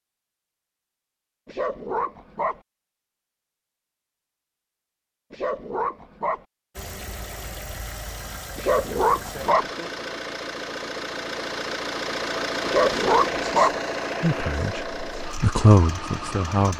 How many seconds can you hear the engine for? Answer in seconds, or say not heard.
10 s.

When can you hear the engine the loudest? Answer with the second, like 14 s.
13 s.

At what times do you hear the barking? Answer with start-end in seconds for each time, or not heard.
1.4-2.6, 5.3-6.5, 8.6-9.7, 12.7-13.8.